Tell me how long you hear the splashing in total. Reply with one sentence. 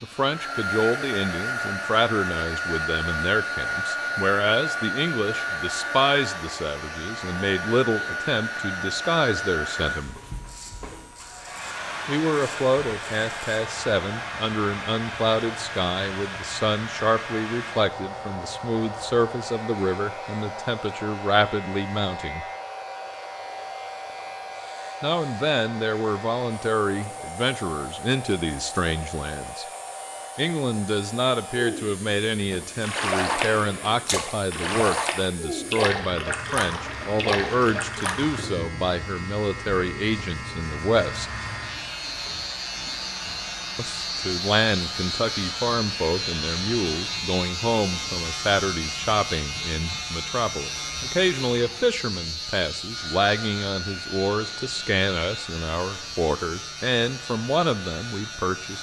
The splashing can be heard for 6 seconds in total.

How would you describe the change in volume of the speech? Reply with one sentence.
The volume of the speech stays about the same.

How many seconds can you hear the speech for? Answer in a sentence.
You can hear the speech for 51 seconds altogether.